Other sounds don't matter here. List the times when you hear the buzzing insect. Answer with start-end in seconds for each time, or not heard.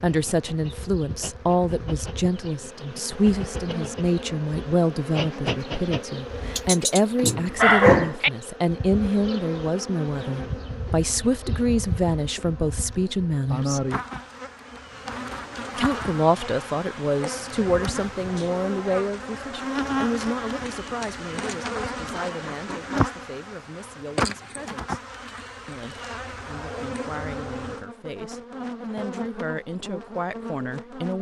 0.0-31.1.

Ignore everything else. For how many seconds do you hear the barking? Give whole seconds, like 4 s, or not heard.
2 s.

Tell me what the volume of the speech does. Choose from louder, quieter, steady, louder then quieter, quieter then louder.
quieter.